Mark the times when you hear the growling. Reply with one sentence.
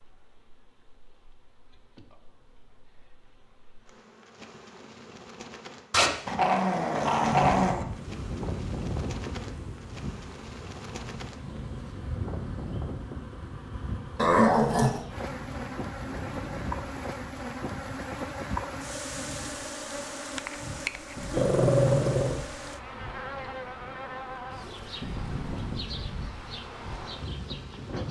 The growling can be heard from 5.9 to 7.8 s, from 14.2 to 15.1 s and from 21.3 to 22.4 s.